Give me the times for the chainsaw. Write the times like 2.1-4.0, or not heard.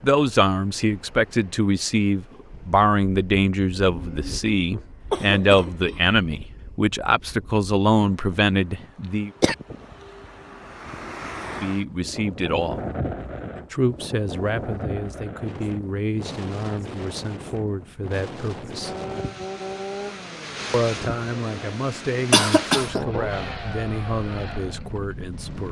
18.8-25.6.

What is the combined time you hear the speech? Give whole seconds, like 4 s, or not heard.
21 s.